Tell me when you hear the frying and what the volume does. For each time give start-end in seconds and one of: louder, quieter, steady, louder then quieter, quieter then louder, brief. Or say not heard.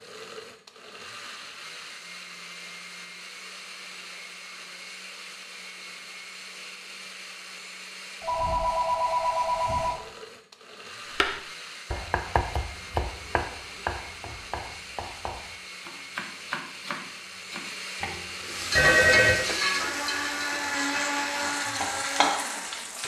18.3-23.0 quieter then louder.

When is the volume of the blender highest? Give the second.
21 s.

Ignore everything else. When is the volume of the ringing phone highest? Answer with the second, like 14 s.
19 s.